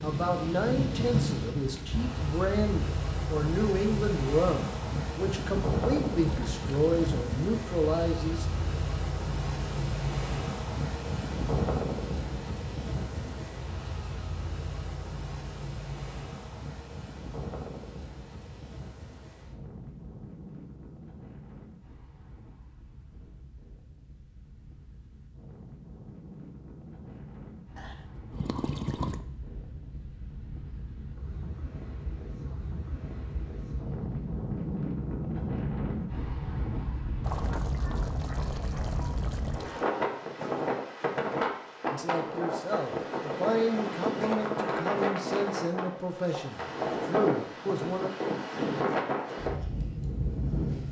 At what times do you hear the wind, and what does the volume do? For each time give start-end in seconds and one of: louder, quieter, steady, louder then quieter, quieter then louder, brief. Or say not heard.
0.0-50.8 quieter then louder.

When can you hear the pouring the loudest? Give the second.
29 s.